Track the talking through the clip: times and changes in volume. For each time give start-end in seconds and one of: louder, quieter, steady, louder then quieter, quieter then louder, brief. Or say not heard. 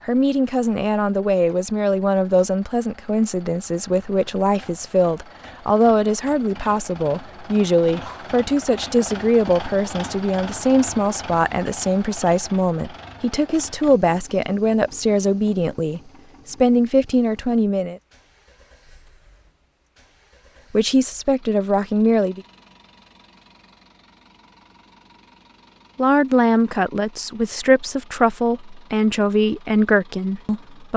0.1-18.0 steady
20.7-22.4 brief
25.9-30.9 steady.